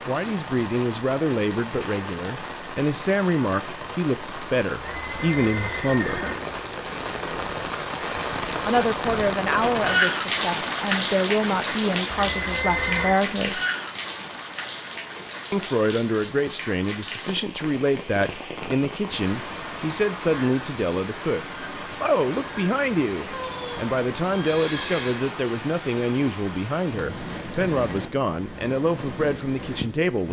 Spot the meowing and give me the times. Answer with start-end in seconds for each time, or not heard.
not heard.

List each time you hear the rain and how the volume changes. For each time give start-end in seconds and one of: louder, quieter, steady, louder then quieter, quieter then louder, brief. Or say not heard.
0.0-30.2 louder then quieter.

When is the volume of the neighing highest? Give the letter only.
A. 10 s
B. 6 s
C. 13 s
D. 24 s
C.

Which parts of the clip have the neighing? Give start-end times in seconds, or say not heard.
4.8-6.3, 12.2-13.2, 23.3-25.2.